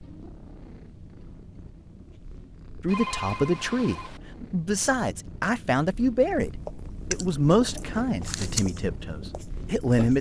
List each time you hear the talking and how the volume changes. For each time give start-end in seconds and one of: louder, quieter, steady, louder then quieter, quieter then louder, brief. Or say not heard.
2.8-10.1 quieter.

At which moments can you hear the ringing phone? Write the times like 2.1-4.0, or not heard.
2.9-4.2.